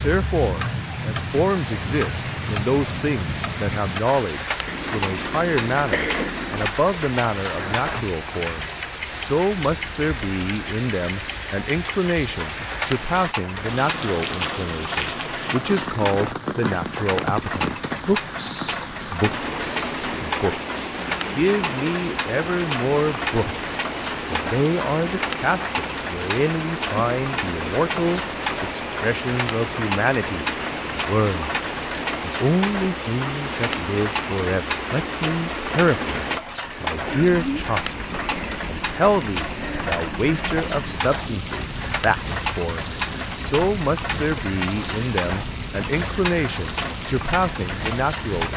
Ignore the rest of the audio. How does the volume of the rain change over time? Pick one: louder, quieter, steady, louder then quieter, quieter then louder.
steady.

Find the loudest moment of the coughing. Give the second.
6 s.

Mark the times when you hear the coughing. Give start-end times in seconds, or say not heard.
4.7-6.7.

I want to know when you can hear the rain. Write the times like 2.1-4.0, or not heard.
0.0-48.5.